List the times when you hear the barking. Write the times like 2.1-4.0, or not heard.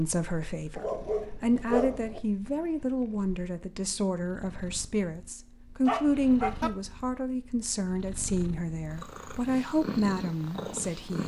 0.8-2.2, 5.8-6.7.